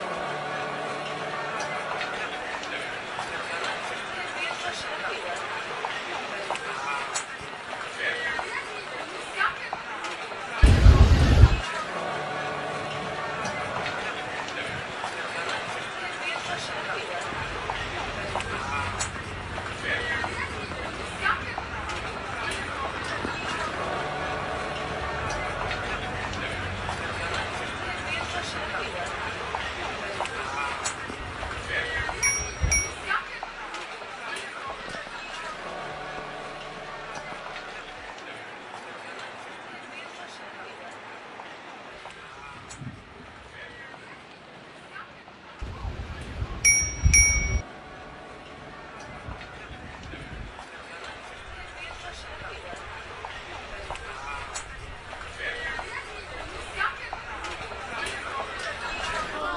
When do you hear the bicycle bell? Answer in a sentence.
You can hear the bicycle bell from 10.6 to 11.6 s, from 31.2 to 33.0 s and from 45.6 to 47.6 s.